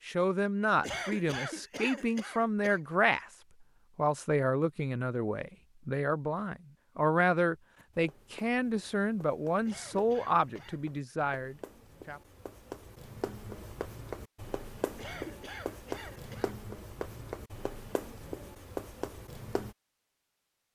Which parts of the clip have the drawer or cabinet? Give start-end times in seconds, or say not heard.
not heard.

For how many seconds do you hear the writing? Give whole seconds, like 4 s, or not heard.
12 s.